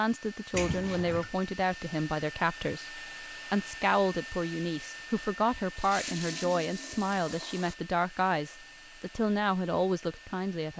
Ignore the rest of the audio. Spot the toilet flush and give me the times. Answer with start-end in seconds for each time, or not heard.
0.5-1.3, 5.8-7.8.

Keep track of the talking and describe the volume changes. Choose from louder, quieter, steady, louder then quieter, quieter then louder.
steady.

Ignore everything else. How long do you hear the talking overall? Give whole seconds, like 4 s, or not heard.
11 s.